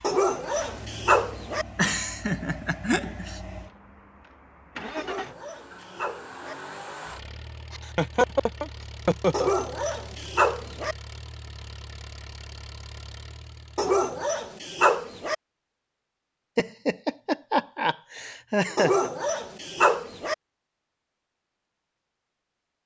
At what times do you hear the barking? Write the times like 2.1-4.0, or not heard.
0.0-1.6, 5.0-6.5, 9.3-10.9, 13.8-15.3, 18.8-20.4.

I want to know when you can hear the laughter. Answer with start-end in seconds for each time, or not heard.
1.8-3.4, 7.7-9.5, 16.6-19.1.